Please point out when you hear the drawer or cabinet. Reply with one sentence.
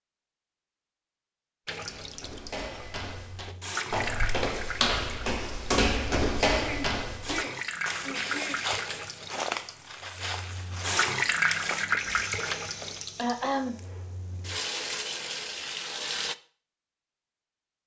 The drawer or cabinet can't be heard in this clip.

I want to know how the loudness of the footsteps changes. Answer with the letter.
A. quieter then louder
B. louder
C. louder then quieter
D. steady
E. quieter
C.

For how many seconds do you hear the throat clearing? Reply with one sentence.
You can hear the throat clearing for 3 seconds altogether.